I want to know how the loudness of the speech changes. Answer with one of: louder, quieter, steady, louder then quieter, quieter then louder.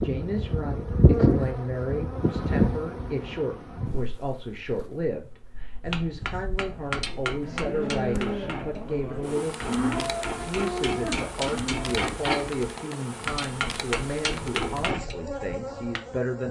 steady.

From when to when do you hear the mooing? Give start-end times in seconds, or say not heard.
6.7-12.0.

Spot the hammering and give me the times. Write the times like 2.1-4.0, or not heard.
5.8-16.0.